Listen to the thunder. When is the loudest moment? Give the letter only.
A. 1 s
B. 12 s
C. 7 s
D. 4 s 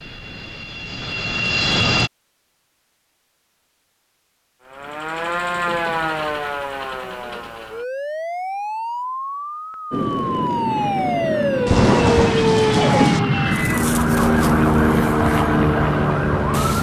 B.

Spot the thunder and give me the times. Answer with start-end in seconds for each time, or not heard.
11.7-13.2.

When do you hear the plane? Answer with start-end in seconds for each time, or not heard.
0.0-2.1, 9.9-16.7.